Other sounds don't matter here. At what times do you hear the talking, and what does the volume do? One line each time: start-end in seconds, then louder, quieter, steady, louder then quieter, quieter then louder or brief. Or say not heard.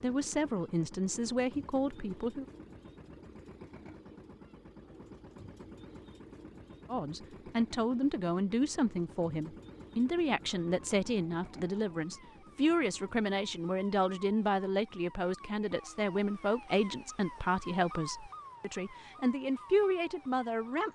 0.0-2.5 brief
6.8-20.8 steady.